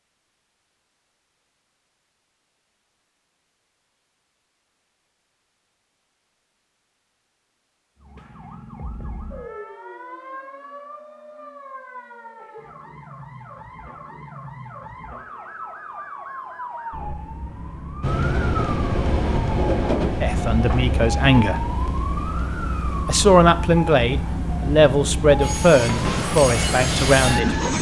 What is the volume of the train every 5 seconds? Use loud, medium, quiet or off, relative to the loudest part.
off, off, off, loud, medium, loud.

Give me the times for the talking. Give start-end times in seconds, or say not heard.
20.2-21.6, 23.1-27.6.